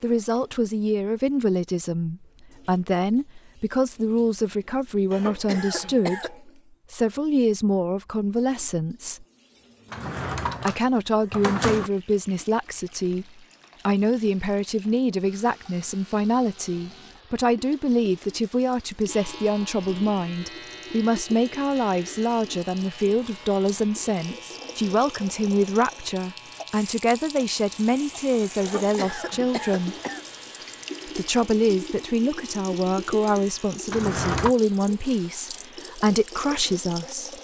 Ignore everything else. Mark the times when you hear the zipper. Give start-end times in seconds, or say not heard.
not heard.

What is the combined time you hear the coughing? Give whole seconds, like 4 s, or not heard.
3 s.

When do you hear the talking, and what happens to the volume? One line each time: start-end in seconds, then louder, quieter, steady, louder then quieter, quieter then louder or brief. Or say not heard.
0.0-9.2 steady
10.7-13.2 brief
13.8-29.9 steady
31.1-37.3 steady.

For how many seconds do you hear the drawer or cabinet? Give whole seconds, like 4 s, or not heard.
3 s.